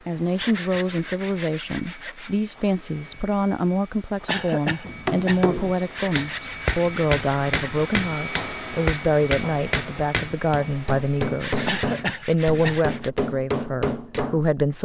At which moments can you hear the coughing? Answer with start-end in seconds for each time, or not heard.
4.2-5.5, 11.7-12.8.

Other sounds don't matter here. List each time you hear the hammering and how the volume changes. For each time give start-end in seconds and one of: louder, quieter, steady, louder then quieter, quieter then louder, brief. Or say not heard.
4.8-14.4 steady.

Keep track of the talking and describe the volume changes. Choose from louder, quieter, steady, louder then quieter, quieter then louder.
steady.